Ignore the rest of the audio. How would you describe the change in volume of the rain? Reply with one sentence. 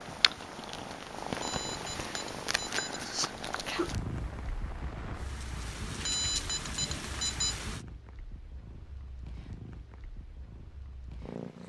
The volume of the rain goes up.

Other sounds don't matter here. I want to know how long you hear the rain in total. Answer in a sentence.
The rain can be heard for 8 seconds in total.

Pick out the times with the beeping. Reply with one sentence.
The beeping can be heard from 1.4 to 3.0 s and from 6.0 to 7.5 s.